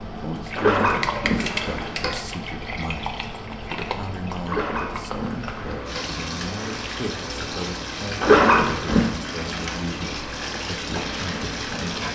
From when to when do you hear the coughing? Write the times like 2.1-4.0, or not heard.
not heard.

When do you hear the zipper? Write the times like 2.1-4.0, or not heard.
0.6-2.1, 4.5-6.2, 8.2-9.1.